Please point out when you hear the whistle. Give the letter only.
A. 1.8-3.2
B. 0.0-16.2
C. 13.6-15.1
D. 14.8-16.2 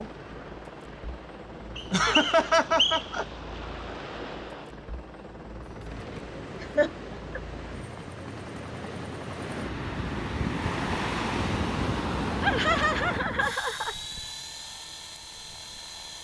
A.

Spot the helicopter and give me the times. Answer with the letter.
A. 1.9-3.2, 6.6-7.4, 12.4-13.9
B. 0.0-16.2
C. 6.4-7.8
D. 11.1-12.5
B.